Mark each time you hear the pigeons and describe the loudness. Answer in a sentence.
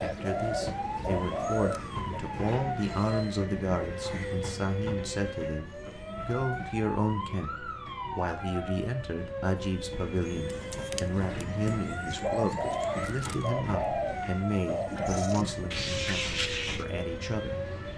The pigeons can be heard briefly from 0.0 to 2.2 s; and from 10.4 to 16.9 s, getting louder.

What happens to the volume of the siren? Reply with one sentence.
The loudness of the siren stays about the same.